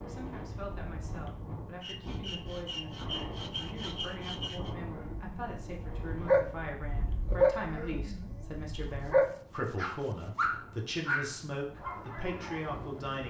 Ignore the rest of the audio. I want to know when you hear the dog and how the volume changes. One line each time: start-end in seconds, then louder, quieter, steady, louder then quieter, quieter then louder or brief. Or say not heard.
4.9-13.0 quieter.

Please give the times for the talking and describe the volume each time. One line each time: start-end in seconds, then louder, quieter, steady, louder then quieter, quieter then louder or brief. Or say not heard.
0.0-13.2 louder.